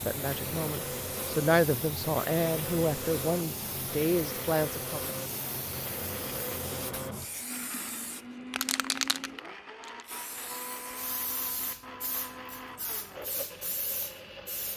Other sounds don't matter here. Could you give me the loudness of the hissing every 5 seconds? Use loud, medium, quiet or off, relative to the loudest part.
loud, loud, medium.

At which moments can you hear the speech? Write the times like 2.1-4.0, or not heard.
0.1-5.1.